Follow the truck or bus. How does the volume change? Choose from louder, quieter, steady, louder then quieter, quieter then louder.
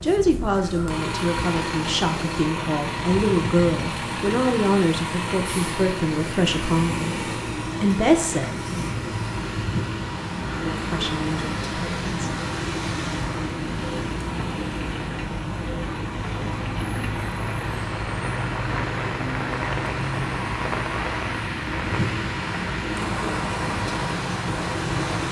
steady.